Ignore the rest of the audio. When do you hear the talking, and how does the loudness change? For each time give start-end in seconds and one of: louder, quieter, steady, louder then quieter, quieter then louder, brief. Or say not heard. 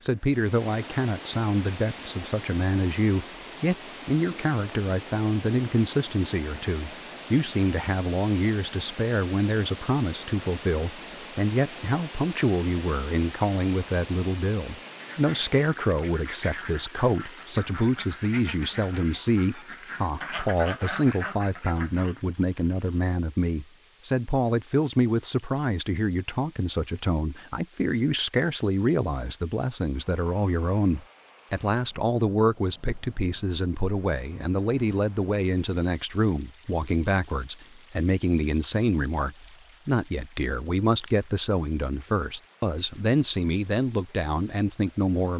0.0-45.3 steady.